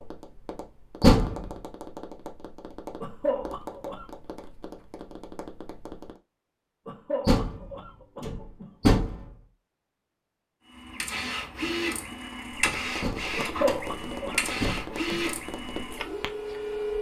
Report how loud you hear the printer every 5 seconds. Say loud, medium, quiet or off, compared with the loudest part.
off, off, loud, loud.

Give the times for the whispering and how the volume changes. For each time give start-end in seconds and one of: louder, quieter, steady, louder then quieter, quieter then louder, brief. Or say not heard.
not heard.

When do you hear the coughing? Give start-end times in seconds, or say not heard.
3.0-4.0, 6.8-8.8, 13.3-15.2.